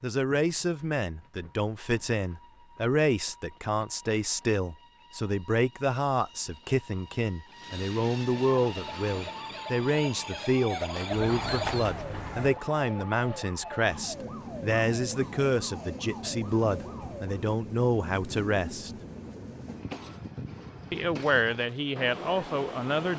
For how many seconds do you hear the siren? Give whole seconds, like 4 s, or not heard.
9 s.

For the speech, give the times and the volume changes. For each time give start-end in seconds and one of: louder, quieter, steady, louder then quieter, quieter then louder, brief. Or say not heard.
0.0-18.9 steady
20.9-23.1 brief.